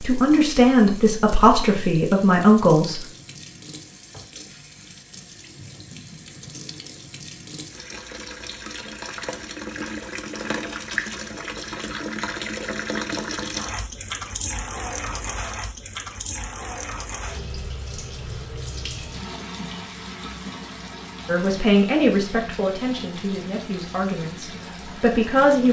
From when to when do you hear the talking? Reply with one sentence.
You can hear the talking from 0.0 to 3.0 s and from 21.2 to 25.6 s.